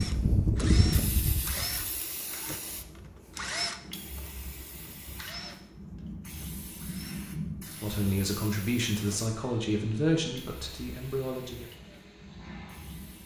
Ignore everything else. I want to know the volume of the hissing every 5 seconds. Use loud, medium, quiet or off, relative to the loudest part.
loud, medium, quiet.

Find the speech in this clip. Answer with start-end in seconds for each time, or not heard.
7.7-11.7.